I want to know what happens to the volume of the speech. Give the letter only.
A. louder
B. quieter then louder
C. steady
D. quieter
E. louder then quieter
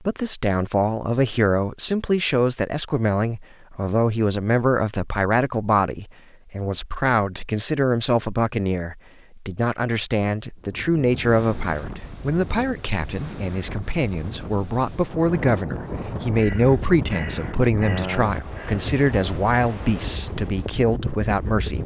C.